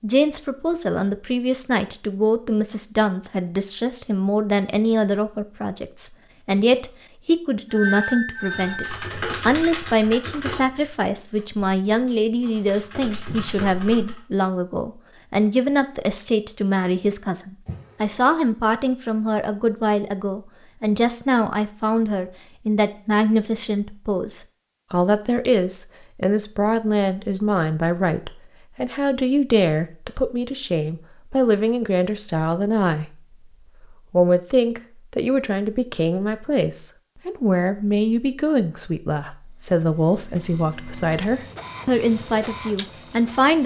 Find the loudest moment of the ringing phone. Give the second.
8 s.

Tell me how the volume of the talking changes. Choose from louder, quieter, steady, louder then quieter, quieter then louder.
steady.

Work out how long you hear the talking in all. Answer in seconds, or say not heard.
43 s.